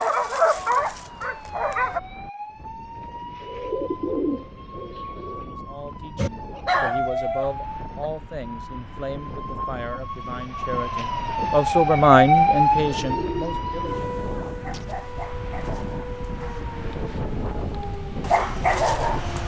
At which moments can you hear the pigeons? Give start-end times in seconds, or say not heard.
3.4-5.5, 12.8-14.1.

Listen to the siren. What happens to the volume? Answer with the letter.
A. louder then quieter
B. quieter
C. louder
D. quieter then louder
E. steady
A.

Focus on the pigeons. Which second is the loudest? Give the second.
4 s.